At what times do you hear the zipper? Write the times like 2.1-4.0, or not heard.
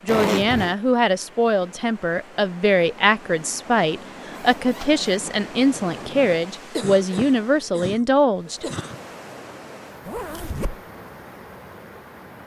0.1-0.8, 4.3-5.0, 10.1-10.8.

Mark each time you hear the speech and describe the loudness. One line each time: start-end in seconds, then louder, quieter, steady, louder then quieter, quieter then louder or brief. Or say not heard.
0.0-8.7 steady.